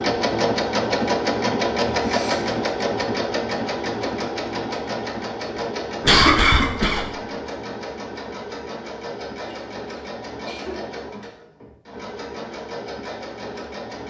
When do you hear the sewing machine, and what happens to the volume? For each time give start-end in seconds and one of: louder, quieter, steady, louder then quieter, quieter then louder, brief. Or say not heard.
0.0-14.0 quieter.